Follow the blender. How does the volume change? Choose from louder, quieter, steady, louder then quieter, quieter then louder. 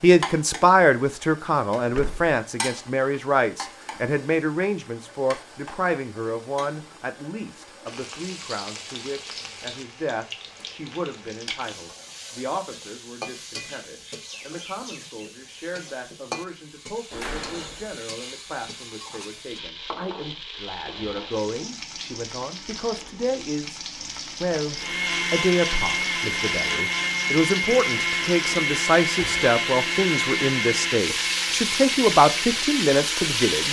quieter.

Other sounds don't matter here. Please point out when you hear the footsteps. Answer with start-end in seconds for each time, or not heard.
not heard.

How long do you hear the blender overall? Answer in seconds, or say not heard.
9 s.